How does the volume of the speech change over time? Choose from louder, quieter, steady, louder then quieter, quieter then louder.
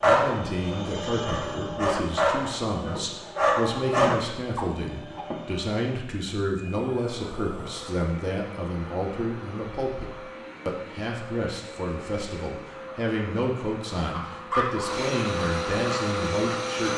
steady.